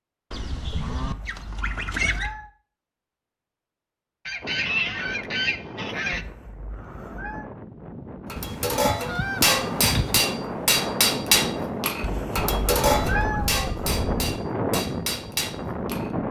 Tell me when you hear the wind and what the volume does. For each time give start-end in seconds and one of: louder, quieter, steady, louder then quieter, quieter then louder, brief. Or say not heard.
4.4-16.2 louder.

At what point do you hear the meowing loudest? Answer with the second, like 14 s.
13 s.